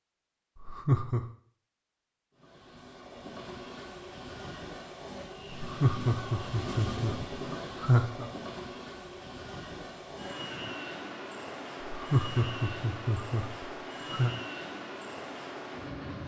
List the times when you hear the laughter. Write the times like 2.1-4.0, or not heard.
0.6-1.2, 5.5-8.3, 11.8-14.3.